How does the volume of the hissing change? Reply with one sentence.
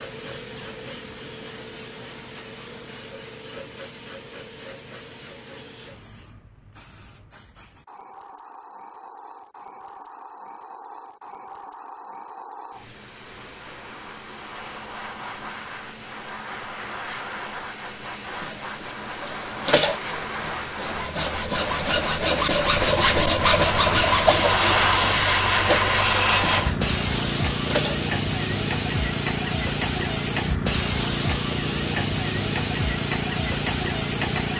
The loudness of the hissing goes up.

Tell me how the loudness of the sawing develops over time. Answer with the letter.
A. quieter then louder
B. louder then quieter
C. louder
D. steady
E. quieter
B.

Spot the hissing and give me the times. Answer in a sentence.
You can hear the hissing from 0.0 to 34.5 s.